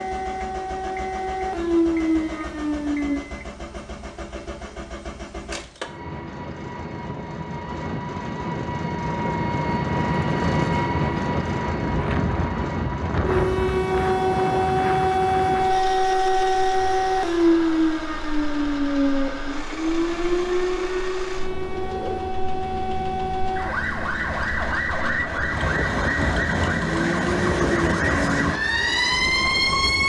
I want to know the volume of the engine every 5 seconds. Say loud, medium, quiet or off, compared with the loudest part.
medium, loud, loud, medium, medium, medium.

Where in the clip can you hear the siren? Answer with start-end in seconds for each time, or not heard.
0.0-3.2, 13.2-30.0.